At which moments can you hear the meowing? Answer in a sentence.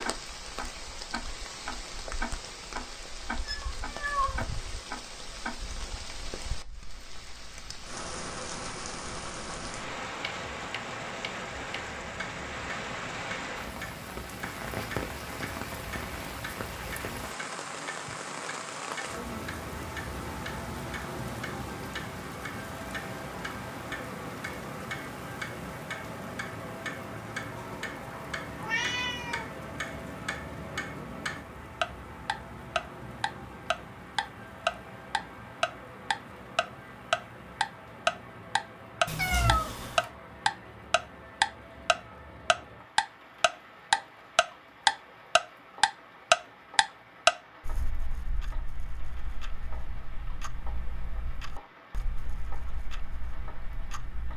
The meowing can be heard from 3.5 to 4.4 s, from 28.6 to 29.4 s and from 39.0 to 40.0 s.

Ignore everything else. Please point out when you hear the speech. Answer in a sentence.
The speech can't be heard in this clip.